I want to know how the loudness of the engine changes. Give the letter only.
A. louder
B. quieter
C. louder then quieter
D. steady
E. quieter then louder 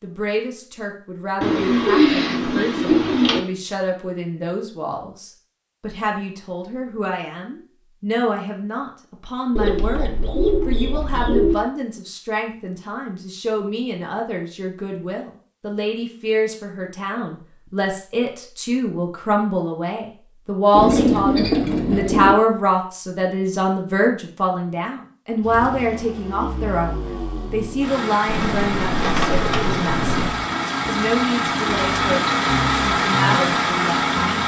A.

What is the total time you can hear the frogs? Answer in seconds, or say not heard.
not heard.